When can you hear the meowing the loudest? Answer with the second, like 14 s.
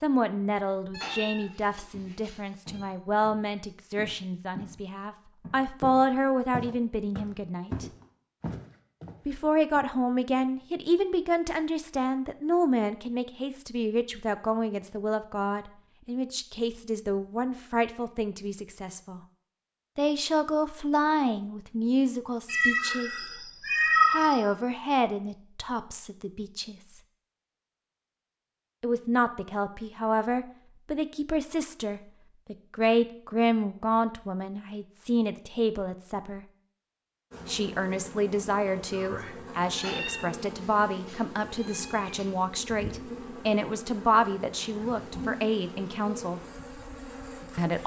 24 s.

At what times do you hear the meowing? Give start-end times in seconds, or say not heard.
0.9-2.9, 22.4-24.4, 39.8-42.3.